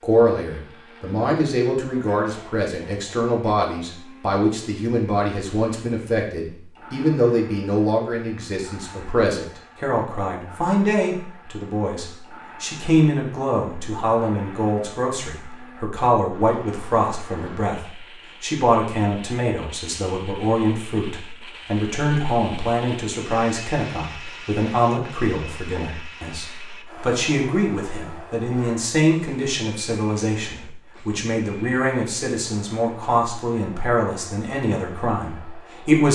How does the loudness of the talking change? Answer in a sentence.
The loudness of the talking stays about the same.